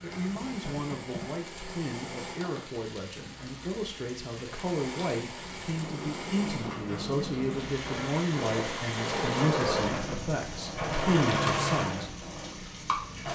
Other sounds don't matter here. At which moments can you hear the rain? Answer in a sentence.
You can hear the rain from 0.0 to 13.2 s.